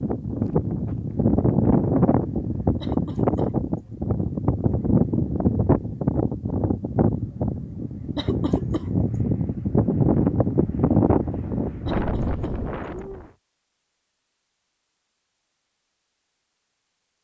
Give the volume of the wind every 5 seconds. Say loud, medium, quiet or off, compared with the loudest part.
loud, loud, loud, off.